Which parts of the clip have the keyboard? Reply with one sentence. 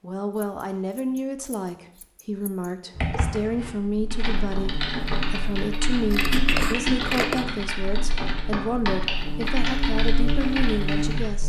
The keyboard can be heard from 3.0 to 11.3 s.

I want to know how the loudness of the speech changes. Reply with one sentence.
The volume of the speech stays about the same.